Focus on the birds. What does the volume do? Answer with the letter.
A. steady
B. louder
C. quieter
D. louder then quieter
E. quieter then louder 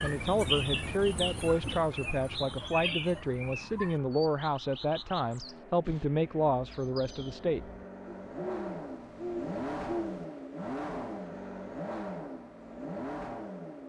E.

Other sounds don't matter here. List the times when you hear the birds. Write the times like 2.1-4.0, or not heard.
0.0-10.2.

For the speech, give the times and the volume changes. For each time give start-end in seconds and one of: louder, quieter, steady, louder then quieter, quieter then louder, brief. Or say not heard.
0.0-7.7 steady.